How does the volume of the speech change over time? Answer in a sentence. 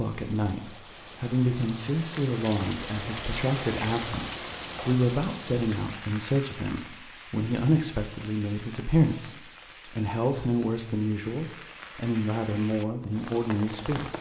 The volume of the speech stays about the same.